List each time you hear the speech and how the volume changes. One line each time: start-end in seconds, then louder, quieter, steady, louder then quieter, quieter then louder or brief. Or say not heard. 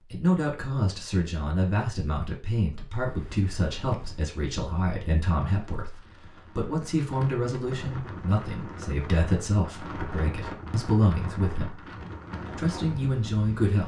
0.1-13.8 steady.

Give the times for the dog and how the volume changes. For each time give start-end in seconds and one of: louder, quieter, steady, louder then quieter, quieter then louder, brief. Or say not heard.
not heard.